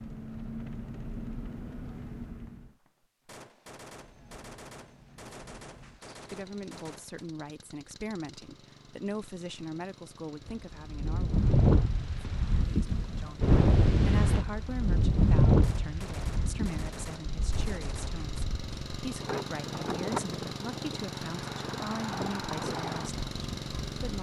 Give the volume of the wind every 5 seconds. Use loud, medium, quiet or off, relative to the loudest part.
off, off, loud, loud, medium.